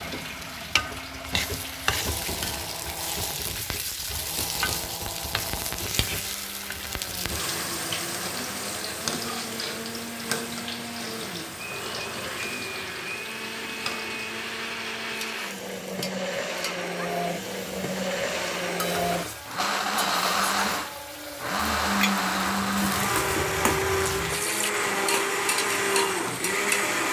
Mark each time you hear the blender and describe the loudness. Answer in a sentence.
You can hear the blender from 0.0 to 27.0 s, getting louder.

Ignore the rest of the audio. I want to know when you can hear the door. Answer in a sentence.
You can't hear the door here.